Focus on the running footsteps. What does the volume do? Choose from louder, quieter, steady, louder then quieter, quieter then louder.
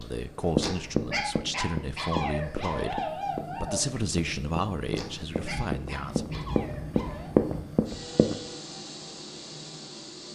quieter then louder.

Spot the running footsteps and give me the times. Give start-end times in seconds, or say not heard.
0.6-8.3.